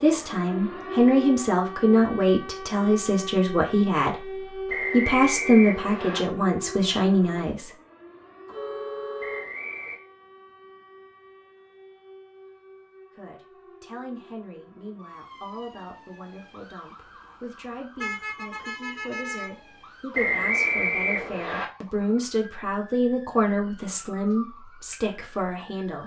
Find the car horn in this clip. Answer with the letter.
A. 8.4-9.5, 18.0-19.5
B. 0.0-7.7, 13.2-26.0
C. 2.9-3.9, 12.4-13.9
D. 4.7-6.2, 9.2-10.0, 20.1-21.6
A.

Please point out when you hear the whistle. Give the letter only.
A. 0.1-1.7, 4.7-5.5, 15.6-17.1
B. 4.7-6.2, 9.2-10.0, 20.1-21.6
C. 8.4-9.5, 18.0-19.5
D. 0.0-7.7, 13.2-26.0
B.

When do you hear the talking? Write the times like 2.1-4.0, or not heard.
0.0-7.7, 13.2-26.0.